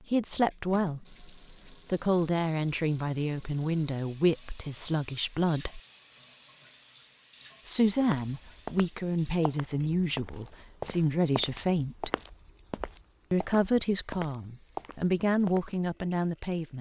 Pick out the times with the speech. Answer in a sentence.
The speech can be heard from 0.1 to 5.8 s, from 7.7 to 12.1 s and from 13.3 to 16.7 s.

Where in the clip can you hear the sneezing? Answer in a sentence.
You can't hear the sneezing here.